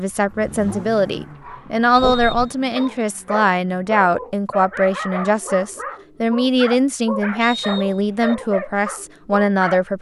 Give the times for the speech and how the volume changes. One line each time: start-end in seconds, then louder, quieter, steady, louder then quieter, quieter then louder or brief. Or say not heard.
0.0-9.9 steady.